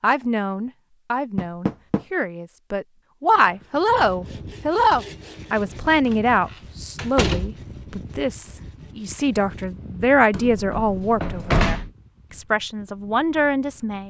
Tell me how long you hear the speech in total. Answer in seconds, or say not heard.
14 s.